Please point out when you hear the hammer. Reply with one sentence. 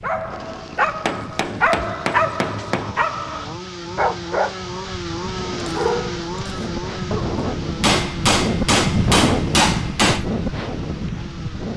You can hear the hammer from 1.0 to 3.0 s and from 7.8 to 10.2 s.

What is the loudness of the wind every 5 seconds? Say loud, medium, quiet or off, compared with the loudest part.
quiet, loud, loud.